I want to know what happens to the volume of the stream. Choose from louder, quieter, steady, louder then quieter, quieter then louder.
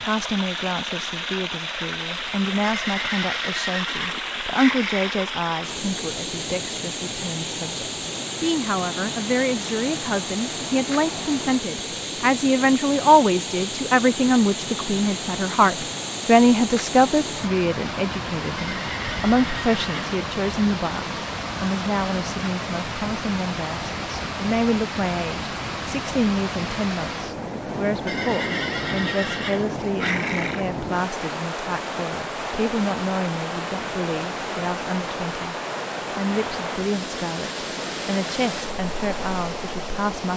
steady.